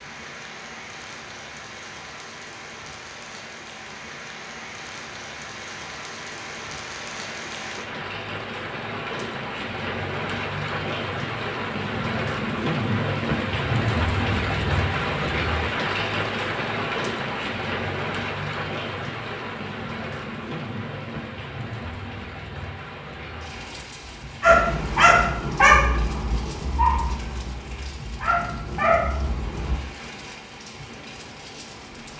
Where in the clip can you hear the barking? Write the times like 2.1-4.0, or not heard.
24.4-29.8.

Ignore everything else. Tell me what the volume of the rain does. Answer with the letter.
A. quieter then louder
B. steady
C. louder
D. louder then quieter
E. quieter
D.